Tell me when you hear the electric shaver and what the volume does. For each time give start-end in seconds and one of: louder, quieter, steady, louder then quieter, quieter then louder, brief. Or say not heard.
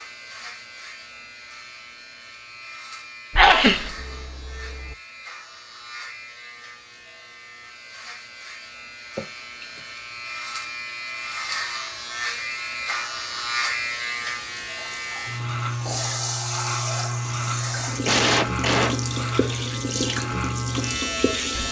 0.0-21.6 louder.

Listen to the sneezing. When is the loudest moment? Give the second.
4 s.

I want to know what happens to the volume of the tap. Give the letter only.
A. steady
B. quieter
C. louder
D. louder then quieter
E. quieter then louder
A.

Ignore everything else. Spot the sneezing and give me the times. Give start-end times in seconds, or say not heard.
3.4-5.0, 9.2-9.8, 17.4-19.6.